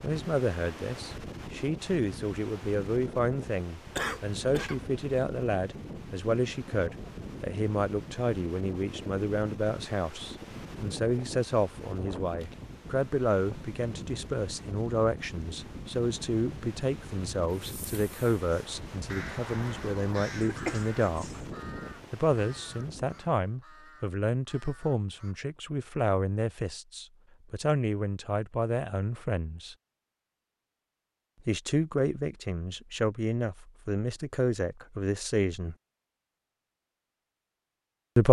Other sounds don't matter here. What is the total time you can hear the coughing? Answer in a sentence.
You can hear the coughing for 2 seconds altogether.